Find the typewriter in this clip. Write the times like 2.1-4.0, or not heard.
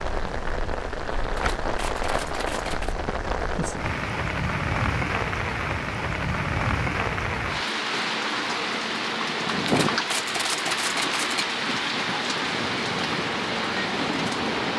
1.4-3.0, 9.7-11.4.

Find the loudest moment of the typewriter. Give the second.
11 s.